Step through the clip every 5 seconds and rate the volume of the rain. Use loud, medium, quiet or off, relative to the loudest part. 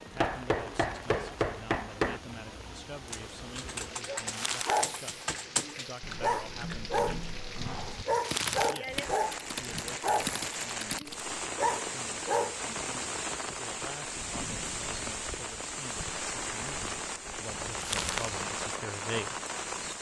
medium, medium, loud, loud.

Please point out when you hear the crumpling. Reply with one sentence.
You can hear the crumpling from 4.3 to 4.8 s, from 8.2 to 8.8 s and from 17.8 to 18.3 s.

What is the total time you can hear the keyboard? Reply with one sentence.
The keyboard can be heard for 8 seconds in total.